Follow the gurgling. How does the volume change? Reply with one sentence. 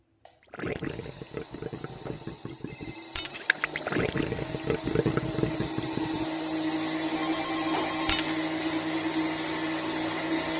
The loudness of the gurgling goes up.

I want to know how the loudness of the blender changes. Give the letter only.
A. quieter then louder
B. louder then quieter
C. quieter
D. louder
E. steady
D.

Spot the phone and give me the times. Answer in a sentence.
You can hear the phone from 2.0 to 3.1 s and from 7.2 to 8.2 s.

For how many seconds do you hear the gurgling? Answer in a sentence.
The gurgling can be heard for 6 seconds in total.